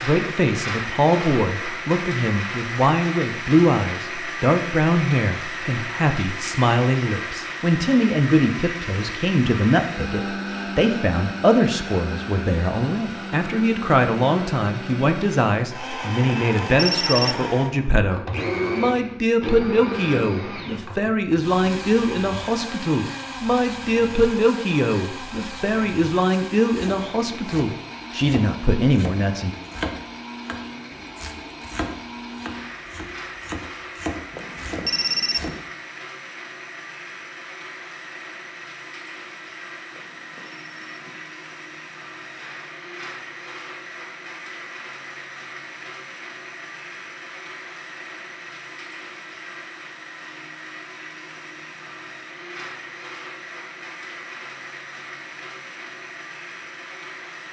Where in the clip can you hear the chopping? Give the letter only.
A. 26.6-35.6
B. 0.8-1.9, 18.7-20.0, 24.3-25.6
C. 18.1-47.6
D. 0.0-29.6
A.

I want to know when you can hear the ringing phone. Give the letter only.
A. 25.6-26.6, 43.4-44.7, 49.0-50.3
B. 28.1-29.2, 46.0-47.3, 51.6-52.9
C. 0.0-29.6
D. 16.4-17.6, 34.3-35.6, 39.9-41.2
D.